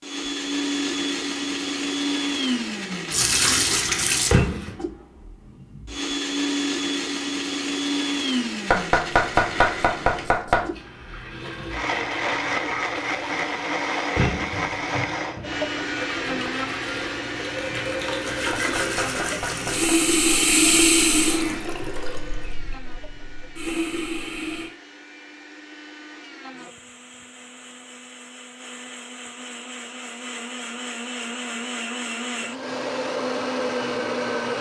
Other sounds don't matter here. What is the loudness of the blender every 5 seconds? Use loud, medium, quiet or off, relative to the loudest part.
loud, loud, loud, loud, quiet, quiet, loud.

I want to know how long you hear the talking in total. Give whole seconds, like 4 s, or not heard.
not heard.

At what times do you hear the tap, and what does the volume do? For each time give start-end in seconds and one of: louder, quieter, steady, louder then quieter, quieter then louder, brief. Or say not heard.
3.1-4.8 brief
10.7-24.7 louder then quieter.